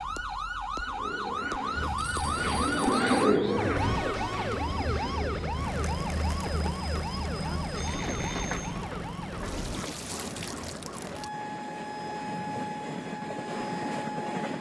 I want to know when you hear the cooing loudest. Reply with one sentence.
The loudest moment of the cooing is at 3 seconds.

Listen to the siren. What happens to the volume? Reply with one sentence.
The loudness of the siren goes down.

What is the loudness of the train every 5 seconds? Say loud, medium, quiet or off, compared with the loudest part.
medium, loud, loud.